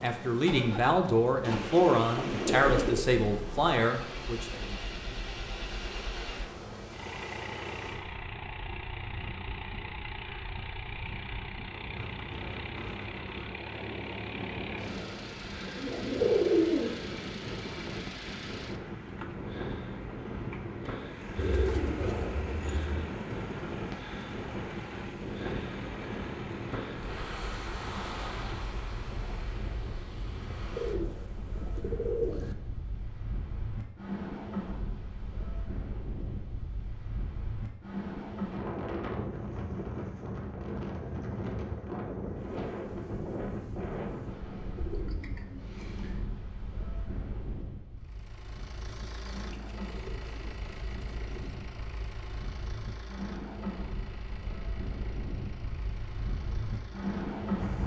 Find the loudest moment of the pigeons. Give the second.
16 s.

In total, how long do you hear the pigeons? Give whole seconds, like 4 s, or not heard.
10 s.